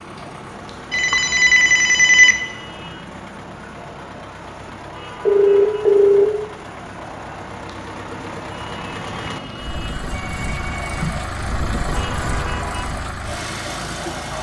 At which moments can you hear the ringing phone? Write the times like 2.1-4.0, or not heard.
0.9-2.4, 5.2-6.3, 10.1-11.2.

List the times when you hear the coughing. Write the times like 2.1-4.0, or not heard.
not heard.